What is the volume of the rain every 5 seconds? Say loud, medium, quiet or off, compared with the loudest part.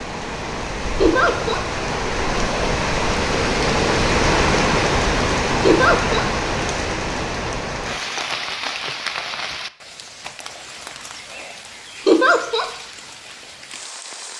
loud, loud, quiet.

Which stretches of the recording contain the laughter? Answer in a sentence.
The laughter can be heard from 1.0 to 1.6 s, from 5.7 to 6.2 s and from 12.1 to 12.7 s.